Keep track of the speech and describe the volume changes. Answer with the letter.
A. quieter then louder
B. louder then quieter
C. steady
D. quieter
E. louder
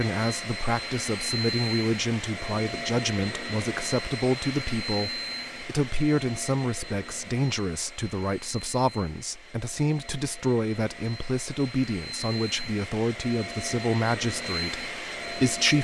C.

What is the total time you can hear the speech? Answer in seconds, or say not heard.
16 s.